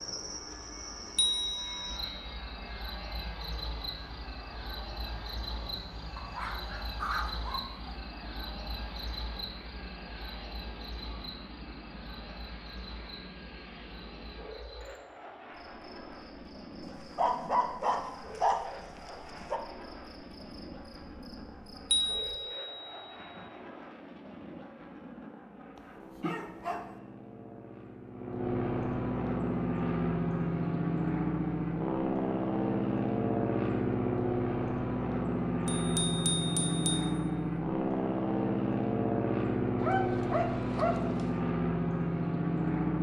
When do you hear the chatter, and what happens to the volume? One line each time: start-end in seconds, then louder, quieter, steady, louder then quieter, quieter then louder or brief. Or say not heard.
not heard.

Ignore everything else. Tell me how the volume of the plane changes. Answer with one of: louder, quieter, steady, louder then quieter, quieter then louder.
louder.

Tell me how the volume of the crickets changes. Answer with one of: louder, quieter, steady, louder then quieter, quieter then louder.
quieter.